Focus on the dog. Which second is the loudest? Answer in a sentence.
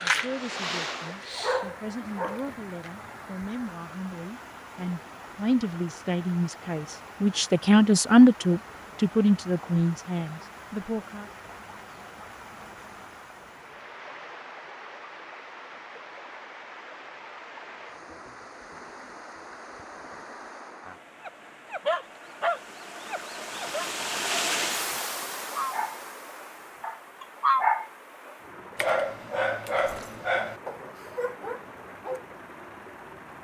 The volume of the dog peaks at 28 seconds.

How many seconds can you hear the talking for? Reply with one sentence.
You can hear the talking for 11 seconds altogether.